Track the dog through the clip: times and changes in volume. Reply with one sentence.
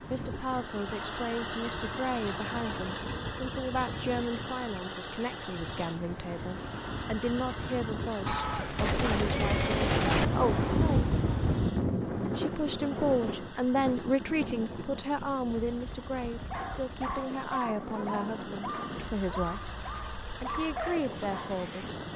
You can hear the dog from 16.3 to 22.1 s, at a steady volume.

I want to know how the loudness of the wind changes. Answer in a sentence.
The volume of the wind goes up, then down.